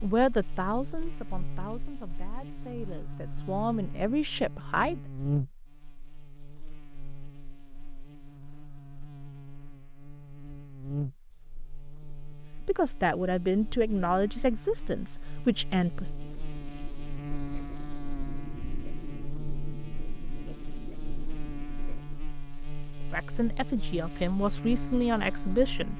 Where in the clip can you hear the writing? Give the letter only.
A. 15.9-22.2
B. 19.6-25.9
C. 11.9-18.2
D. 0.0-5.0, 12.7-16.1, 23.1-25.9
A.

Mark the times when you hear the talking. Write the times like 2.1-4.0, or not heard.
0.0-5.0, 12.7-16.1, 23.1-25.9.